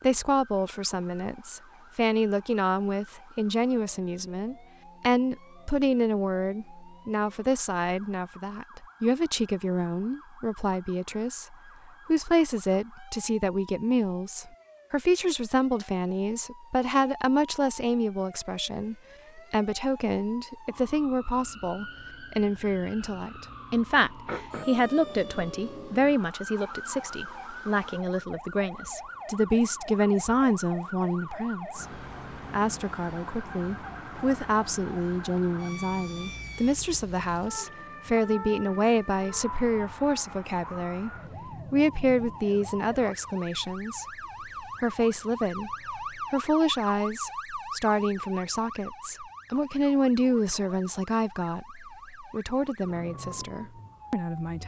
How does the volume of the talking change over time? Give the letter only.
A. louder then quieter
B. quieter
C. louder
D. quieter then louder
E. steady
E.